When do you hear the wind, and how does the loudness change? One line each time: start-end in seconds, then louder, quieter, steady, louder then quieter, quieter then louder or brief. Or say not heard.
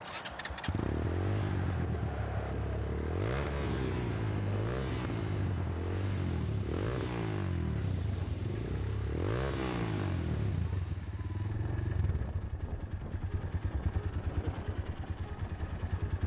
0.0-16.2 steady.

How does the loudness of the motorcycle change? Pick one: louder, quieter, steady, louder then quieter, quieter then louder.
quieter.